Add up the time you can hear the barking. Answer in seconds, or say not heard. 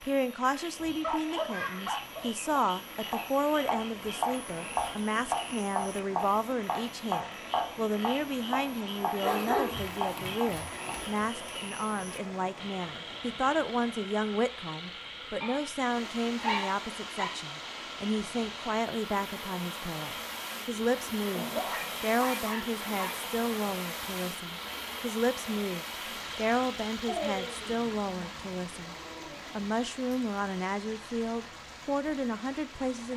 10 s.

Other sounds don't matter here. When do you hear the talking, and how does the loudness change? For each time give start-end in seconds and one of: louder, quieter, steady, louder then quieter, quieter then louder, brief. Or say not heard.
0.0-33.1 steady.